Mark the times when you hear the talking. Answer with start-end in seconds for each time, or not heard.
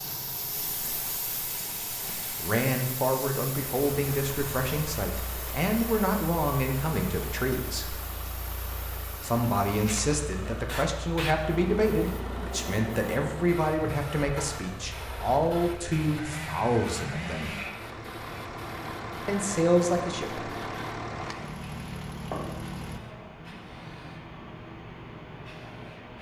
2.0-8.0, 9.2-17.6, 19.2-20.5.